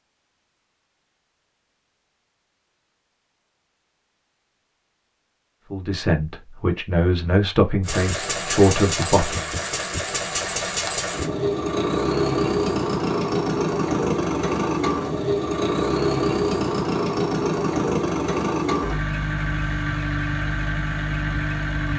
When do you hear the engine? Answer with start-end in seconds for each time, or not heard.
7.8-21.9.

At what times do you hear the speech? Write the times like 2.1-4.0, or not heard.
5.7-9.5.